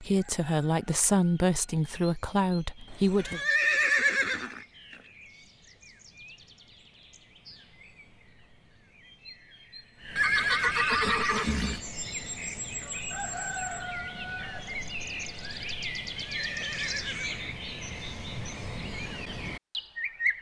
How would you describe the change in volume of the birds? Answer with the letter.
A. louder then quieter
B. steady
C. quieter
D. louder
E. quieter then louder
D.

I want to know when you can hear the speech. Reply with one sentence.
You can hear the speech from 0.0 to 3.4 s.